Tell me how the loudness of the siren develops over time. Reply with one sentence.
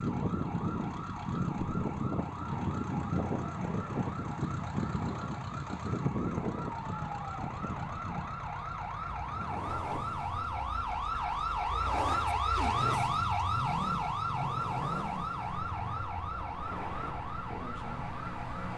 The volume of the siren goes up, then down.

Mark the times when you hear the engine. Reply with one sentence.
The engine can be heard from 0.0 to 18.7 s.